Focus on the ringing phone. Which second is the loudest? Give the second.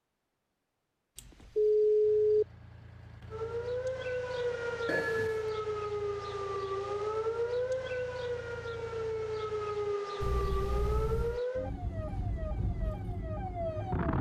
2 s.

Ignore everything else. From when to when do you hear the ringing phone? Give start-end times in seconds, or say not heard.
1.1-2.5, 4.8-5.5, 10.2-11.4.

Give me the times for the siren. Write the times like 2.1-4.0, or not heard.
3.3-14.1.